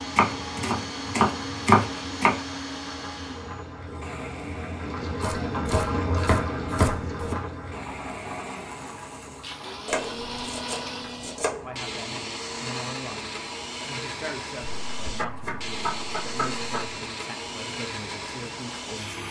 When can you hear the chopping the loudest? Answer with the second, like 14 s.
2 s.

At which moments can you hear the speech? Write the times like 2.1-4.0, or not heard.
11.7-19.2.